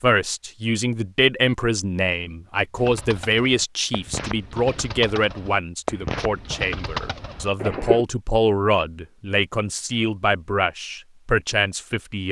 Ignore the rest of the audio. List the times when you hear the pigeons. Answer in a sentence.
You can hear the pigeons from 2.8 to 8.1 s.